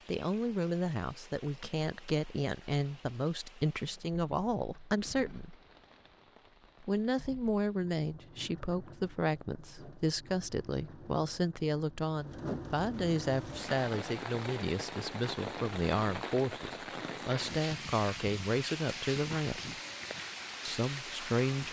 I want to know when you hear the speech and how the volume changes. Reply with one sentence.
You can hear the speech from 0.1 to 5.5 s, at a steady volume; from 6.8 to 19.8 s, at a steady volume; and briefly from 20.6 to 21.6 s.